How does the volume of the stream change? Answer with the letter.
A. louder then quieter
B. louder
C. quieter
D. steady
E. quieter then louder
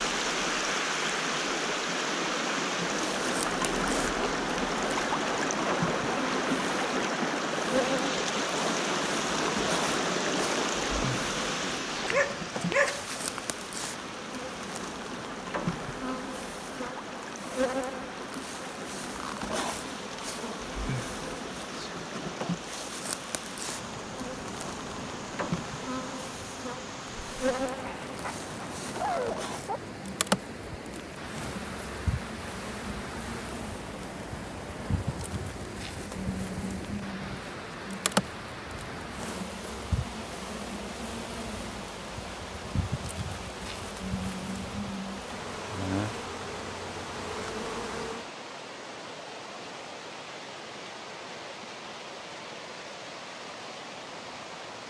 C.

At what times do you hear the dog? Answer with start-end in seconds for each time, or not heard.
12.0-13.4, 27.8-29.8.